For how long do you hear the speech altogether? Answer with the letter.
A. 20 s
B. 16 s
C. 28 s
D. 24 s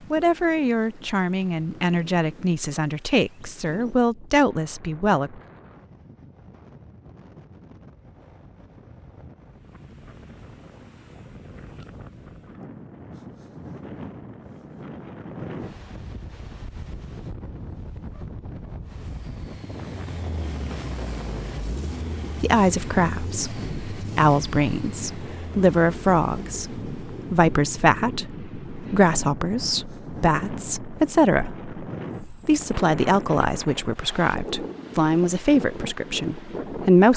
A.